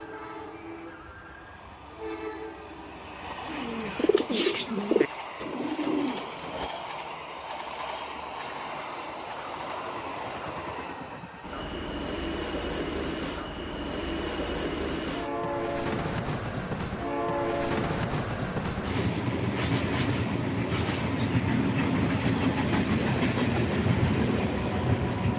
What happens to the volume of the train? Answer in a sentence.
The volume of the train goes up.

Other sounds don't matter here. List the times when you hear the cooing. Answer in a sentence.
You can hear the cooing from 3.5 to 6.7 s.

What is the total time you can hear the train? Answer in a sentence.
You can hear the train for 25 seconds altogether.